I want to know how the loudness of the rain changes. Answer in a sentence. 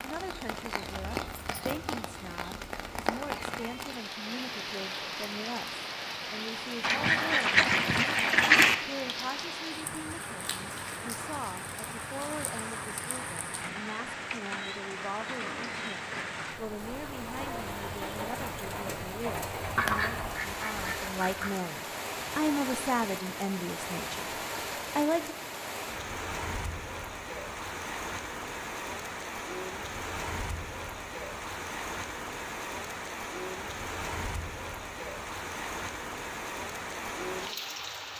The volume of the rain stays about the same.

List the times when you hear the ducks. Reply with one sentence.
The ducks can be heard from 6.8 to 8.8 s and from 19.6 to 21.5 s.